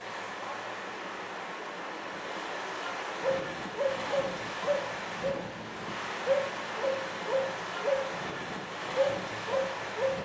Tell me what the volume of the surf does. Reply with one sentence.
The volume of the surf stays about the same.